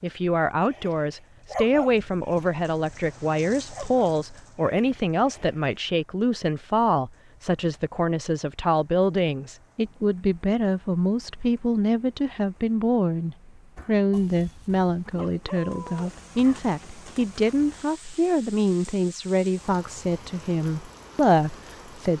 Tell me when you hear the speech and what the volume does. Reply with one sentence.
You can hear the speech from 0.0 to 22.1 s, at a steady volume.